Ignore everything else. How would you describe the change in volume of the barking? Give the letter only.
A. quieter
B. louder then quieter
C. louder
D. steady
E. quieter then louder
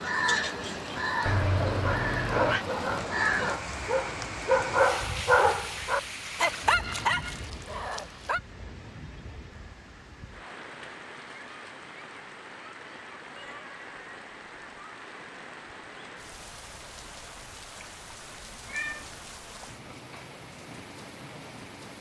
B.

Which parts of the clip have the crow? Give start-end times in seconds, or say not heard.
0.0-3.6.